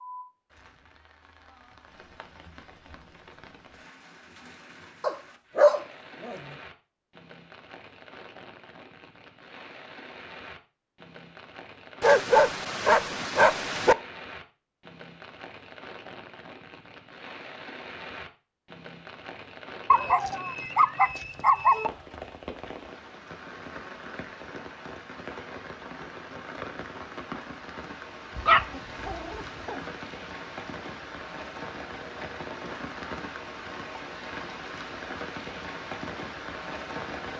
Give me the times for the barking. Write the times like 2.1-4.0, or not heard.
5.0-6.4, 12.0-13.9, 19.9-21.9, 28.4-29.8.